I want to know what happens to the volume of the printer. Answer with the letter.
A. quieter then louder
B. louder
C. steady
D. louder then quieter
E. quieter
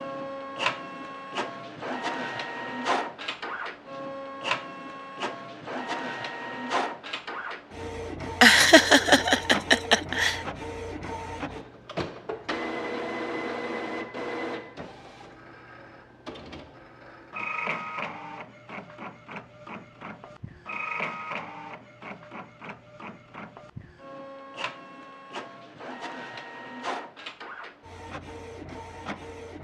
E.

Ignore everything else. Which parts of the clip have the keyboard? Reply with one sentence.
The keyboard can't be heard in this clip.